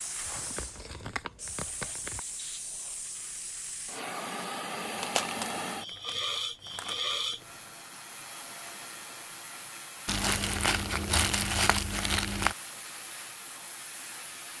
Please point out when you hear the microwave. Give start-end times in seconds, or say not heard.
not heard.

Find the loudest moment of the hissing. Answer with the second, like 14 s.
7 s.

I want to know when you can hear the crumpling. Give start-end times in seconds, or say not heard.
0.2-2.2, 5.0-7.5, 10.1-12.6.